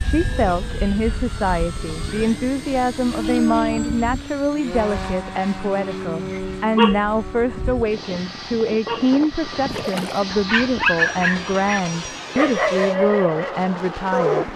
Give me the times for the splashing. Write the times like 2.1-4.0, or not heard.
9.7-10.3.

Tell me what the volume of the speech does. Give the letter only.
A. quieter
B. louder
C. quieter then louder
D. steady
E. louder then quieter
D.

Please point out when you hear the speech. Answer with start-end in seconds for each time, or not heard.
0.0-14.5.